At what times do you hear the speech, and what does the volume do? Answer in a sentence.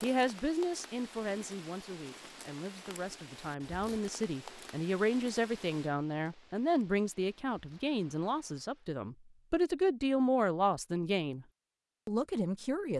You can hear the speech from 0.0 to 11.4 s, getting louder; and briefly from 12.1 to 12.9 s.